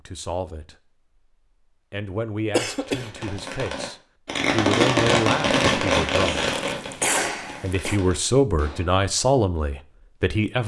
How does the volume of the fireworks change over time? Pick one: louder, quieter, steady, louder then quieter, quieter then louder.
louder then quieter.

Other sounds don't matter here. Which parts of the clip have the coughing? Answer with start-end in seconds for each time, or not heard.
2.5-3.1, 6.4-8.0.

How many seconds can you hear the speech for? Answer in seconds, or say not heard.
8 s.